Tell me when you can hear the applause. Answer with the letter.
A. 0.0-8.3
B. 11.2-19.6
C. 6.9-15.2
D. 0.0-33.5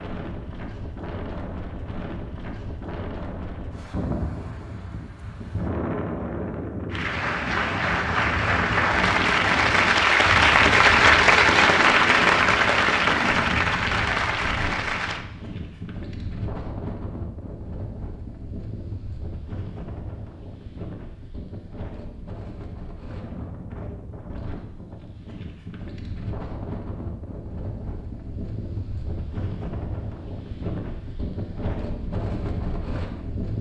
C.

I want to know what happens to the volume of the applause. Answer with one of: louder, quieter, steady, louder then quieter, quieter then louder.
louder then quieter.